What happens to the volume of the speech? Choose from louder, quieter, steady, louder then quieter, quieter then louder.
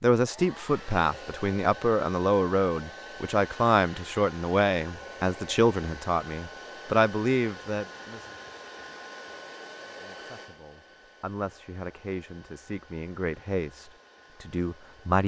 quieter then louder.